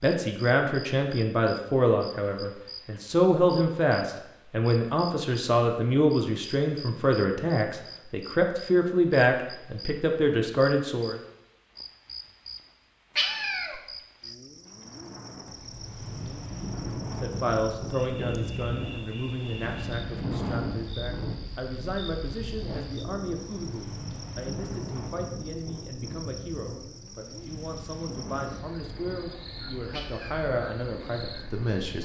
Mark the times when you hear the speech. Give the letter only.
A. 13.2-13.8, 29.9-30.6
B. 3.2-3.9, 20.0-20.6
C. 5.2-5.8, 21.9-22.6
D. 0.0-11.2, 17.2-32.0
D.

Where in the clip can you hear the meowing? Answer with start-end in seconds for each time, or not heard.
13.2-13.8, 29.9-30.6.